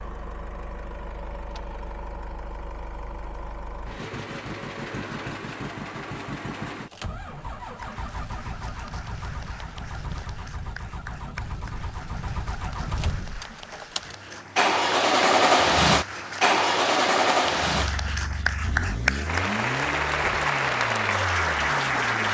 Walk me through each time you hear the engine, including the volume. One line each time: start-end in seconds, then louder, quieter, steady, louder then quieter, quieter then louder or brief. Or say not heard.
0.0-22.2 louder then quieter.